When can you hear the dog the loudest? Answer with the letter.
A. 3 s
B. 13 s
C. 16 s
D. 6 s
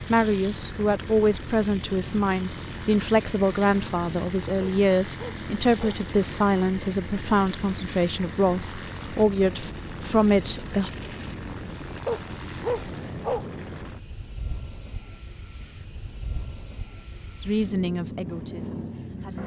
B.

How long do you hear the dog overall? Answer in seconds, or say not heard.
3 s.